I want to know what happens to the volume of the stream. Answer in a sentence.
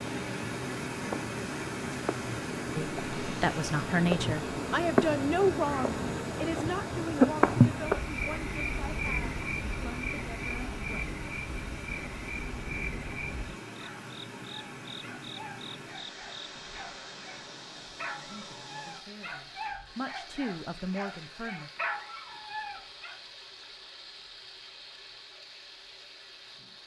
The volume of the stream goes down.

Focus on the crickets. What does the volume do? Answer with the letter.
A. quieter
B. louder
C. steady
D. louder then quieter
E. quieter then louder
D.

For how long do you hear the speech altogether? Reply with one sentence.
The speech can be heard for 12 seconds in total.